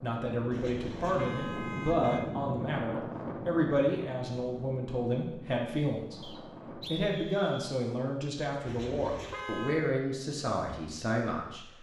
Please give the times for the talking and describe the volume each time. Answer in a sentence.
You can hear the talking from 0.0 to 11.7 s, at a steady volume.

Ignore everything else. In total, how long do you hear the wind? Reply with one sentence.
You can hear the wind for 7 seconds altogether.